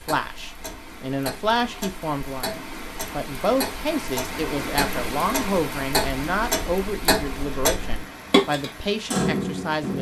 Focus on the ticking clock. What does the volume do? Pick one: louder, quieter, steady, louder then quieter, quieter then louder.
louder.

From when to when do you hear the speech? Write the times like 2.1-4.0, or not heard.
0.1-9.9.